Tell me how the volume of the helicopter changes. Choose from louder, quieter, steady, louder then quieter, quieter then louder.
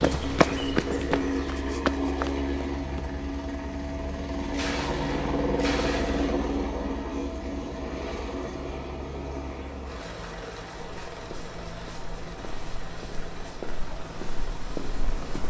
quieter.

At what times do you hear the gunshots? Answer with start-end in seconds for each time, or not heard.
4.5-6.3.